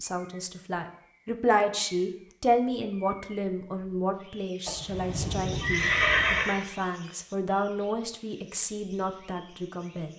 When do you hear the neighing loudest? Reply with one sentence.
The volume of the neighing peaks at 6 seconds.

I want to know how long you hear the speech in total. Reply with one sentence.
The speech can be heard for 10 seconds in total.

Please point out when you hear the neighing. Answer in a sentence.
The neighing can be heard from 4.7 to 6.6 s.